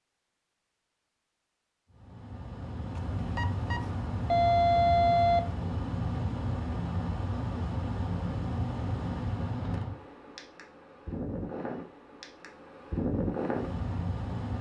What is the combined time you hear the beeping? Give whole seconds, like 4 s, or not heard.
2 s.